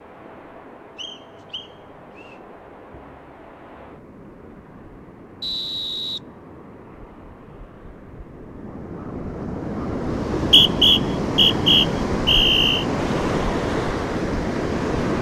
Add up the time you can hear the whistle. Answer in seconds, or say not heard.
5 s.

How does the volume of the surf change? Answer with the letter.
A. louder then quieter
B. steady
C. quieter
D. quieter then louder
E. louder
E.